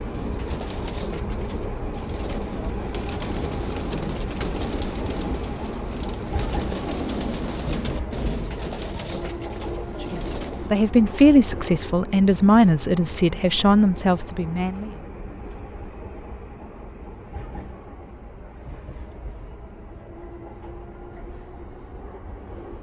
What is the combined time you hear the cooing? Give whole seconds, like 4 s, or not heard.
11 s.